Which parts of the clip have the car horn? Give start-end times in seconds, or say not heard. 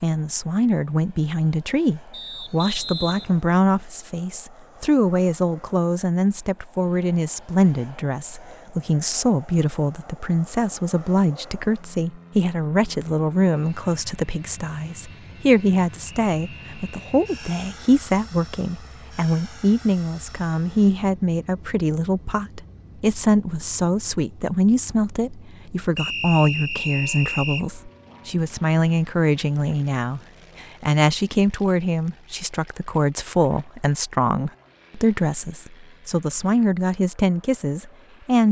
not heard.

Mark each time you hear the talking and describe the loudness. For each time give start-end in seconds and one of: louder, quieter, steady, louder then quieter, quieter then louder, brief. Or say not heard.
0.0-38.4 steady.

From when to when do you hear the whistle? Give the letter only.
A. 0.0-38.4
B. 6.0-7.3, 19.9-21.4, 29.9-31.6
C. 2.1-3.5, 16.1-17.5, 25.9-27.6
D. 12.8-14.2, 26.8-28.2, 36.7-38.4
C.